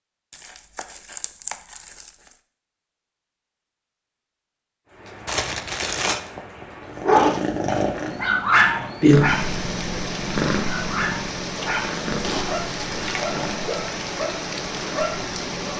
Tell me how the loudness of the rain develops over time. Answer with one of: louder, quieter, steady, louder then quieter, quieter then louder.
louder.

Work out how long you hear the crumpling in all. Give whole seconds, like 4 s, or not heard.
4 s.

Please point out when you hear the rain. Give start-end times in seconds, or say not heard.
4.8-15.7.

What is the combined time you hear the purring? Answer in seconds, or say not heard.
9 s.